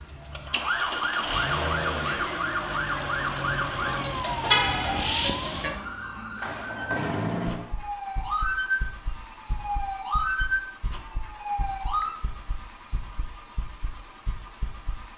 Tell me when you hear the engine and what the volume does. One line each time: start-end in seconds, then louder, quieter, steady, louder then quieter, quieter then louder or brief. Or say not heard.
0.0-15.1 quieter.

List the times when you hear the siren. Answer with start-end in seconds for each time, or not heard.
0.1-12.2.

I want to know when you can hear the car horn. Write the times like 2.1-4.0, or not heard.
4.5-5.2.